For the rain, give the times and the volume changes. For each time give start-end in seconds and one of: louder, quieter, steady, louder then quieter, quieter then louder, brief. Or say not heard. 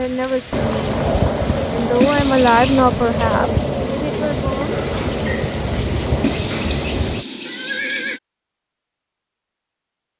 0.0-7.2 steady.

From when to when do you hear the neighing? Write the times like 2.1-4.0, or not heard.
2.0-2.9, 6.2-8.2.